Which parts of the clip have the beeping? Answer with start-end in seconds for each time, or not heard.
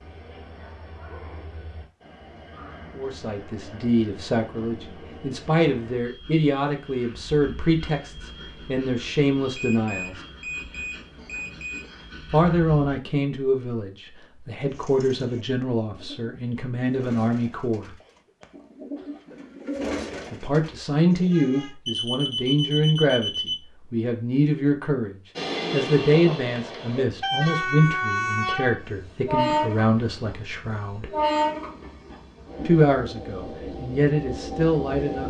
9.6-11.9, 21.9-23.6.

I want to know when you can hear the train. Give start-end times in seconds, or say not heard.
0.0-13.0, 25.4-35.2.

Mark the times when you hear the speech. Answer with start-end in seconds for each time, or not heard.
3.0-10.2, 12.3-17.9, 20.3-31.1, 32.6-35.2.